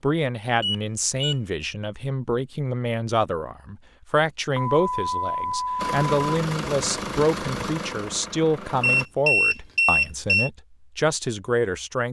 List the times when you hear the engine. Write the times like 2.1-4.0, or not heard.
5.8-9.1.